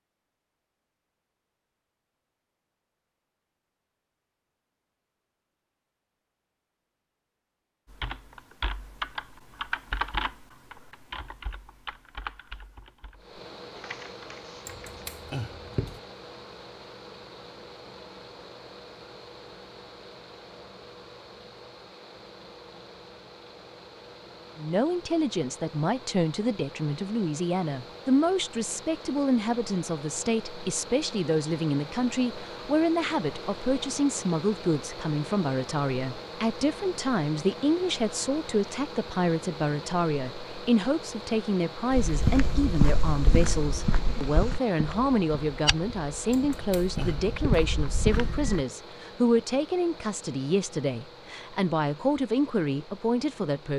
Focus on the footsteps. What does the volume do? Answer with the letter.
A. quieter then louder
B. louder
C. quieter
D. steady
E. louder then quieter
A.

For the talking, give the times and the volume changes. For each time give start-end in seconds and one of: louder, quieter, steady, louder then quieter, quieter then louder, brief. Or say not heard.
24.6-53.7 steady.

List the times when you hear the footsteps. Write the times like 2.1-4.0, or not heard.
41.9-48.6.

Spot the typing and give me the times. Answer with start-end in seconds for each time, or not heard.
7.9-14.9.